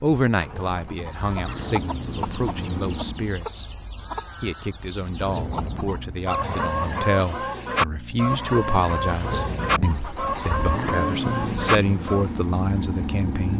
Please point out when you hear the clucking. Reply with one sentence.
You can hear the clucking from 1.1 to 12.3 s.